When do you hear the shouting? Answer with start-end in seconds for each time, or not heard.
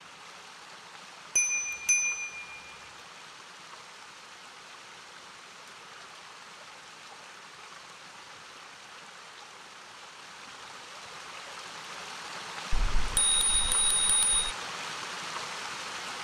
not heard.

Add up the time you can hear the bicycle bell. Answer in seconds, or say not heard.
3 s.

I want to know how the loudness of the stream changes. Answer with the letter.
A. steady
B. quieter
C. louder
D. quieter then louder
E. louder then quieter
C.